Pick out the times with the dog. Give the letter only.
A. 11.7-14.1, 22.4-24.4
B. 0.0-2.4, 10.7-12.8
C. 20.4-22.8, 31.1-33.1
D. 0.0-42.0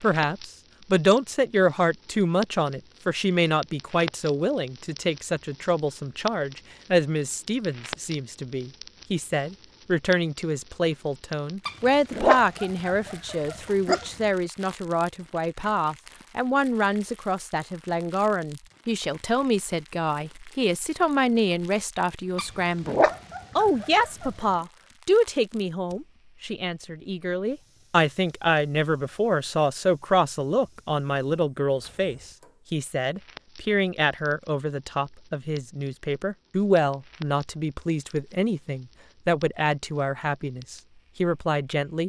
A.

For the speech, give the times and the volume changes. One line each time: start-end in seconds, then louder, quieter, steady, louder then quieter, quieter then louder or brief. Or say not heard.
0.0-42.0 steady.